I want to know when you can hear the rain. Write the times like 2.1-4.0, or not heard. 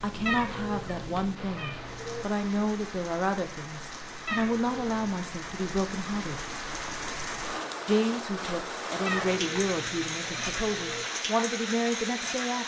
0.0-12.6.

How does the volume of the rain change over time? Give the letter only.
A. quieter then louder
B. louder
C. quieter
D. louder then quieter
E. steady
B.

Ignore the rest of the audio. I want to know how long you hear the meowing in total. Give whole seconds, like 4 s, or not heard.
5 s.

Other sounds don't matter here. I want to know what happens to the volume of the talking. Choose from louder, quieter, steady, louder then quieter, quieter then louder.
steady.